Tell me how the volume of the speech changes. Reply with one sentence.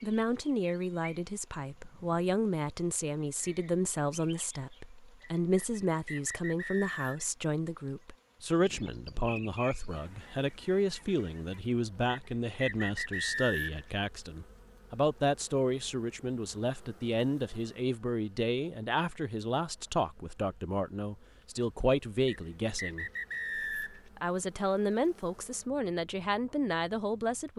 The loudness of the speech stays about the same.